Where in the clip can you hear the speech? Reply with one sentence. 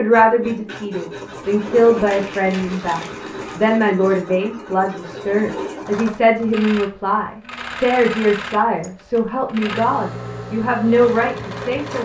You can hear the speech from 0.0 to 11.9 s.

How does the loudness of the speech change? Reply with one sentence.
The volume of the speech stays about the same.